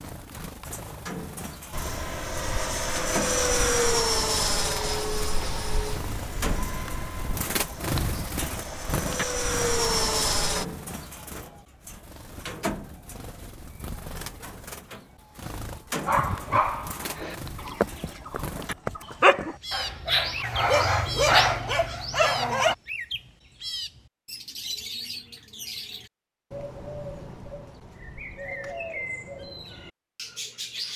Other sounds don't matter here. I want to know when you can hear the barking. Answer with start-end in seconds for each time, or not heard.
16.1-22.8.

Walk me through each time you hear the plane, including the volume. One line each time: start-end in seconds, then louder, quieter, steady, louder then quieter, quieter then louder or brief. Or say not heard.
1.7-10.7 quieter then louder.